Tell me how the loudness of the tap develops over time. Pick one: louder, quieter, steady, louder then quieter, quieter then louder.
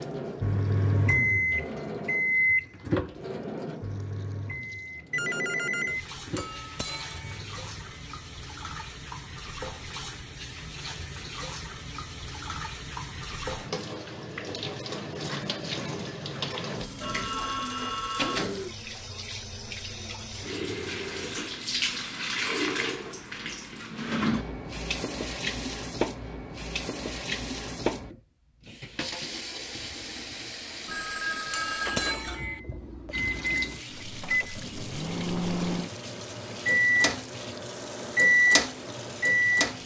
louder then quieter.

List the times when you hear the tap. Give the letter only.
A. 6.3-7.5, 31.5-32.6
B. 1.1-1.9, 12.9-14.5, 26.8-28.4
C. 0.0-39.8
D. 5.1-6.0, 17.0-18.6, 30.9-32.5
C.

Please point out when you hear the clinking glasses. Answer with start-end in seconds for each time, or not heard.
6.3-7.5, 31.5-32.6.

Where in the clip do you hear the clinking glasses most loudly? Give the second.
32 s.